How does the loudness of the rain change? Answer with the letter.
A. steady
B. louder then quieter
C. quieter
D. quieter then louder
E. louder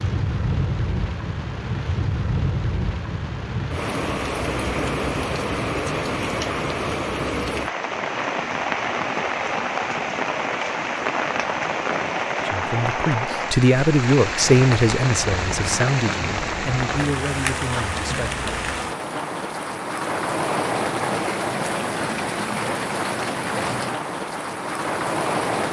A.